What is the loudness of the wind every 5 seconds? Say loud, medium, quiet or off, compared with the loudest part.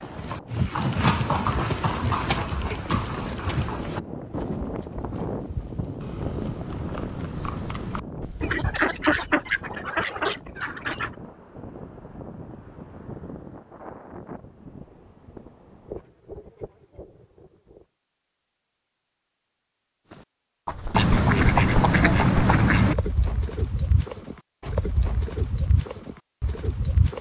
loud, loud, medium, medium, off, off.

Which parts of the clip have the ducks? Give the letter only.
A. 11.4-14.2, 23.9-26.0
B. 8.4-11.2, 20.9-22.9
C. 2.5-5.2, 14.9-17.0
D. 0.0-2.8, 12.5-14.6
B.